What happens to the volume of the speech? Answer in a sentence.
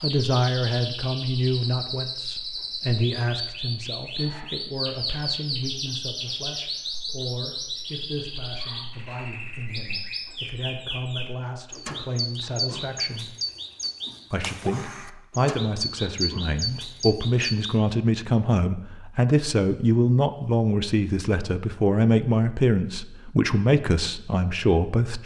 The volume of the speech goes down, then up.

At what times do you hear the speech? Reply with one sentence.
You can hear the speech from 0.0 to 13.3 s and from 14.3 to 25.2 s.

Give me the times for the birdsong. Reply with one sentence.
The birdsong can be heard from 0.0 to 17.8 s.